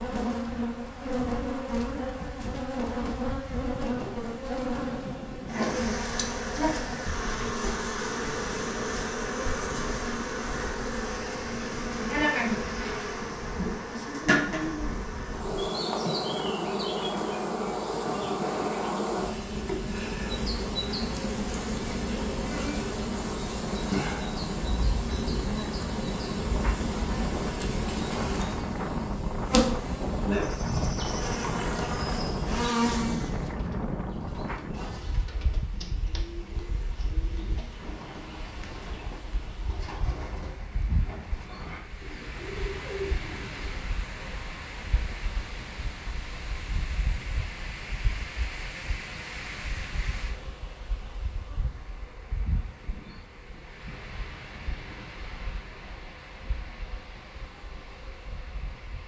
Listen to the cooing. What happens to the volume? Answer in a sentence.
The volume of the cooing goes up.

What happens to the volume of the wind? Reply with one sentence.
The loudness of the wind goes up, then down.